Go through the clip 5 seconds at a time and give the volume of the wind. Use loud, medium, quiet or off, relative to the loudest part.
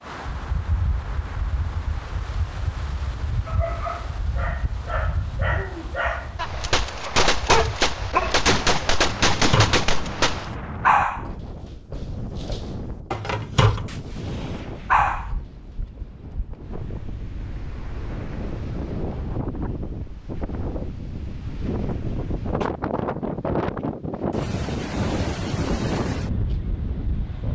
medium, medium, medium, medium, loud, loud.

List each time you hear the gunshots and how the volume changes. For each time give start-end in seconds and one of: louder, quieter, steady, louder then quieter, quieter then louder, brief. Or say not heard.
6.3-10.5 steady
13.8-15.3 brief.